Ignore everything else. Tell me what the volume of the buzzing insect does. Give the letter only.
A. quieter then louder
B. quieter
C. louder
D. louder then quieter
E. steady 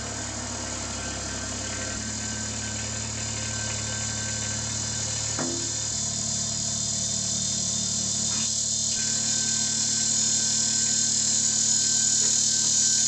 C.